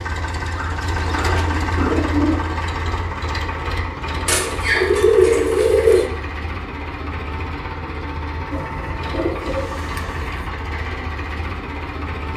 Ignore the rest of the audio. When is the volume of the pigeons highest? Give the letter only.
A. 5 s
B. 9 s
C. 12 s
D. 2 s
A.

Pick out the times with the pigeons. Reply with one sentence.
The pigeons can be heard from 0.6 to 2.5 s, from 4.2 to 6.0 s and from 8.5 to 10.5 s.